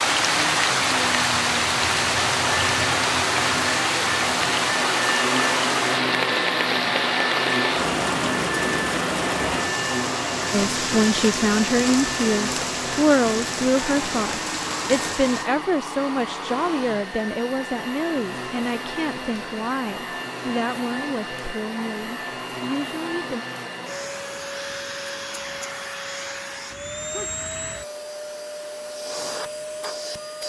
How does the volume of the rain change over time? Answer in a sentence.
The volume of the rain goes down.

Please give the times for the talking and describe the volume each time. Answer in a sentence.
You can hear the talking from 10.5 to 23.4 s, getting quieter.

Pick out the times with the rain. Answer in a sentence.
The rain can be heard from 0.0 to 15.5 s.